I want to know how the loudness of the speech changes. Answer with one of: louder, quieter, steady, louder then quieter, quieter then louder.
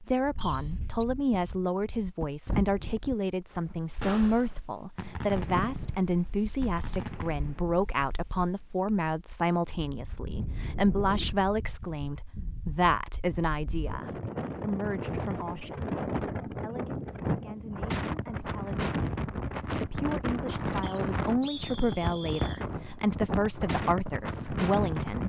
quieter then louder.